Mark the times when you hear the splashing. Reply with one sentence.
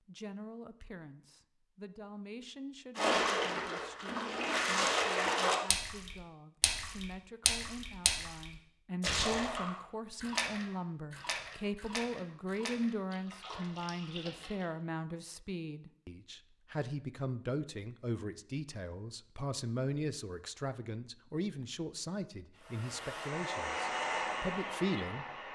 You can hear the splashing from 3.0 to 14.7 s.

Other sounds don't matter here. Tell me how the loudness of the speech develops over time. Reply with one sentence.
The volume of the speech goes up.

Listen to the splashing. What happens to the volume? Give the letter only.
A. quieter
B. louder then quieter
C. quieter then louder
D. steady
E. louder
A.